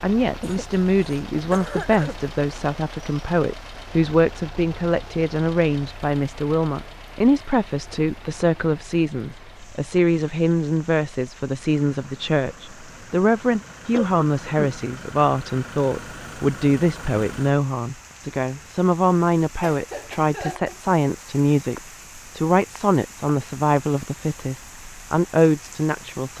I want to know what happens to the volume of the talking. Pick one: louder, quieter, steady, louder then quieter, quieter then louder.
steady.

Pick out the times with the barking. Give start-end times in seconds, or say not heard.
not heard.